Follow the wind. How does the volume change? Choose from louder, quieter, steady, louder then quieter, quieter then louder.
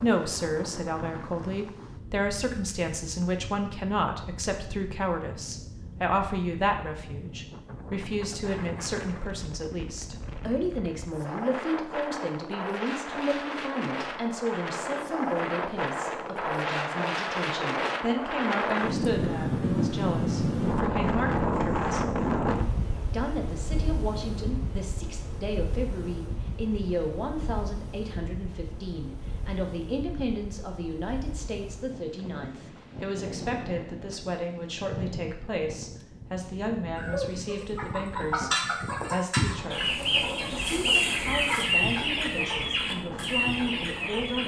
louder then quieter.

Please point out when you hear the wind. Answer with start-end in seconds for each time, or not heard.
0.0-44.4.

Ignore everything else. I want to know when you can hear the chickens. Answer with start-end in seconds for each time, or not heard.
37.0-44.4.